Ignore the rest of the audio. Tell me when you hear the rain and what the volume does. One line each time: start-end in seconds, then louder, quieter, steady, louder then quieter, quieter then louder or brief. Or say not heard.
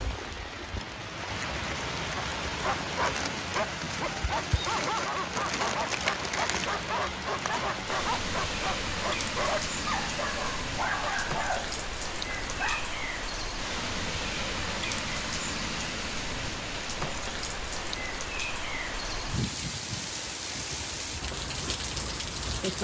0.0-22.8 steady.